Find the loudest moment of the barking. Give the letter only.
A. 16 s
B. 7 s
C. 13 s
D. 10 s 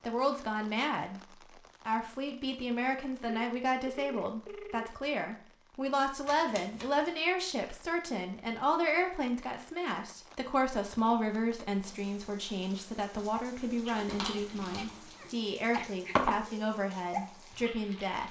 A.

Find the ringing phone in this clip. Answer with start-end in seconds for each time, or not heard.
3.2-4.9.